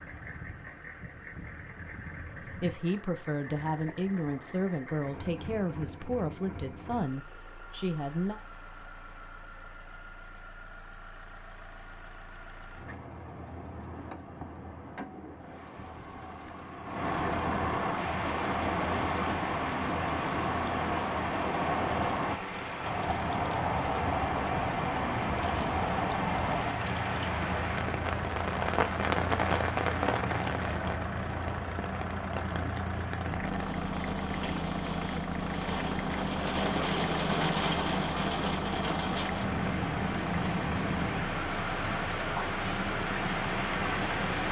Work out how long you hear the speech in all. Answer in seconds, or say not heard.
6 s.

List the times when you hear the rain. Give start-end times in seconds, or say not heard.
17.9-44.4.